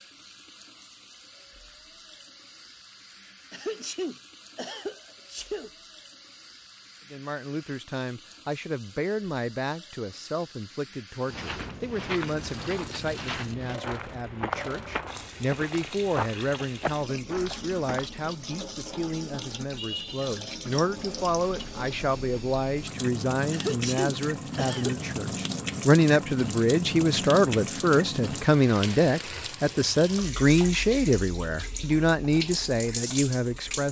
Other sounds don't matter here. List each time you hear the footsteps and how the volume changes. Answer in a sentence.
You can hear the footsteps from 11.2 to 18.1 s, at a steady volume.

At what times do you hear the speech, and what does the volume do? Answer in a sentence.
The speech can be heard from 7.1 to 33.8 s, getting louder.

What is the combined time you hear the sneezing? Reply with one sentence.
You can hear the sneezing for 4 seconds altogether.